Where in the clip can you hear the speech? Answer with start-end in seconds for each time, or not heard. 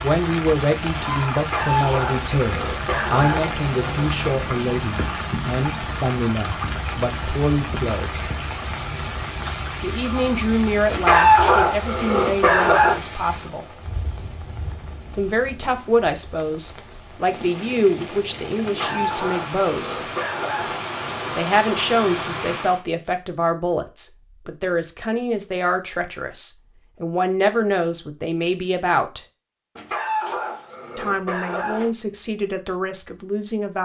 0.0-8.2, 9.8-13.7, 15.1-20.0, 21.4-29.2, 30.9-33.7.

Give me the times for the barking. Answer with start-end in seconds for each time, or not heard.
1.4-4.2, 10.9-13.0, 18.6-21.4, 29.8-31.9.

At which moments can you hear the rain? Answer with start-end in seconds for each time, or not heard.
0.0-22.9.